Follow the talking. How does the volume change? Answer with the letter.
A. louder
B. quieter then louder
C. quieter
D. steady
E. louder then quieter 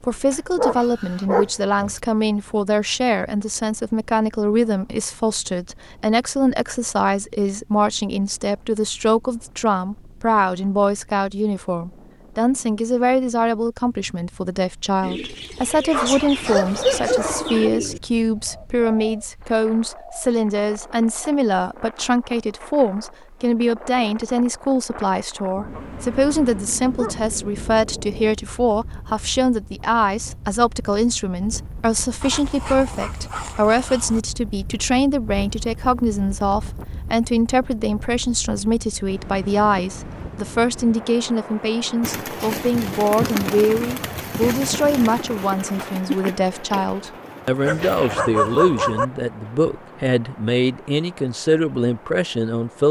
D.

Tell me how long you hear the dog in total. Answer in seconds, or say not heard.
10 s.